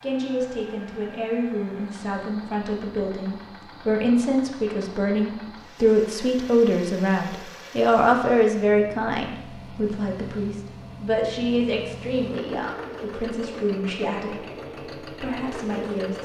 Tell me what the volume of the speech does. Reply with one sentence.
The loudness of the speech goes up, then down.